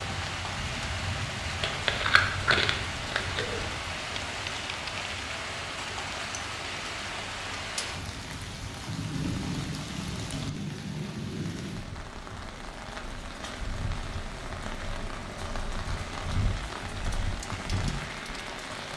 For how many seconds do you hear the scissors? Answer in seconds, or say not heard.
2 s.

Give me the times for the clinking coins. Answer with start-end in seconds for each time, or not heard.
4.1-5.2.